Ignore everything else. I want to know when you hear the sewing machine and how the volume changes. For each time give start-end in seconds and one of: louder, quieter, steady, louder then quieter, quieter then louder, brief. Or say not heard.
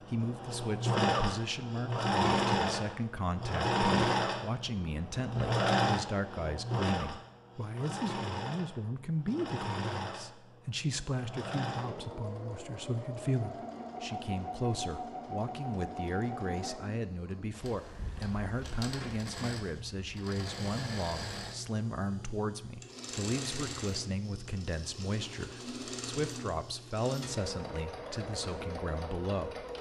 0.0-29.7 quieter.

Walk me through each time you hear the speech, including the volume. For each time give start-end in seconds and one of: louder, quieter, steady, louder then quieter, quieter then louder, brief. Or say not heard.
0.1-29.6 steady.